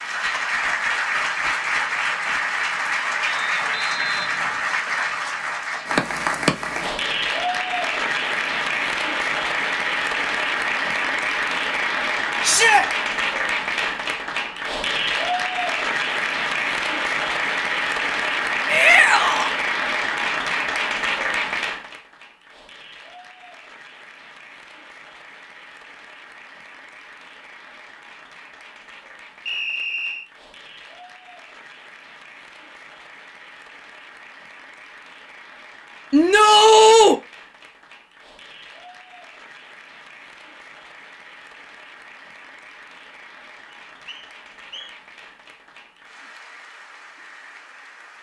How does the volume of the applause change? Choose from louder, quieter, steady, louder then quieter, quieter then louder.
quieter.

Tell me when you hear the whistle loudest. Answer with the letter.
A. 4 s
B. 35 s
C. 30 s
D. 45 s
C.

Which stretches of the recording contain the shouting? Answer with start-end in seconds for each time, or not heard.
12.4-12.8, 18.6-19.6, 36.1-37.1.